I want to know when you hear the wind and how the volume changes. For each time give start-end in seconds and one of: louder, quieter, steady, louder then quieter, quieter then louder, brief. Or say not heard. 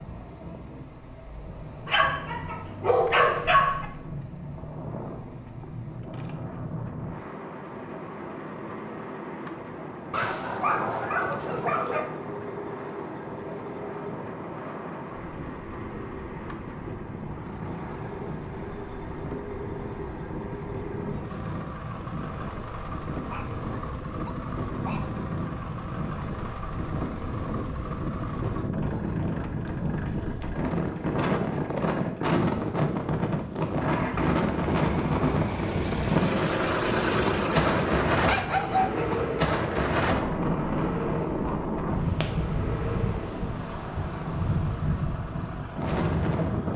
0.0-46.7 louder.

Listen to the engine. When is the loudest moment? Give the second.
37 s.